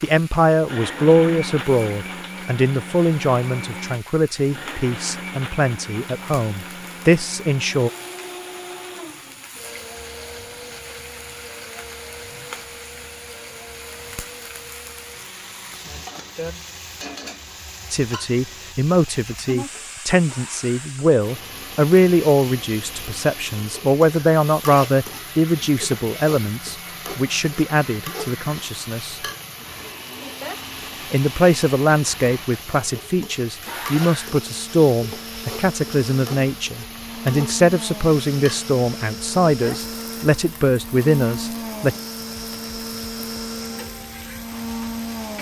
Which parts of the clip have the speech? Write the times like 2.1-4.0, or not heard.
0.0-7.9, 17.9-29.1, 31.1-42.0.